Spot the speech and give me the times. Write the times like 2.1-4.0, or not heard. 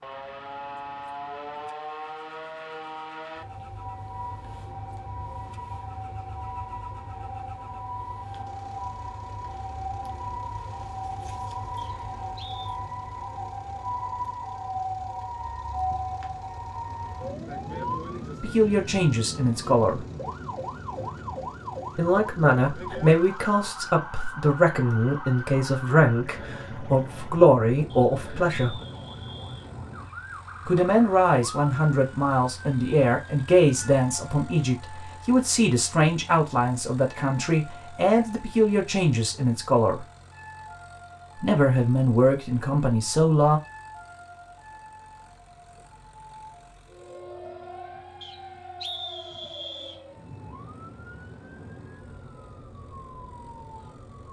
18.4-20.0, 21.9-28.8, 30.6-40.0, 41.4-43.6.